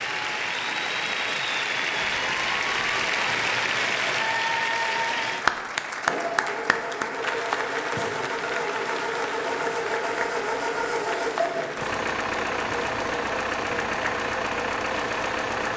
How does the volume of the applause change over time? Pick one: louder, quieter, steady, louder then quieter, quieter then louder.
quieter.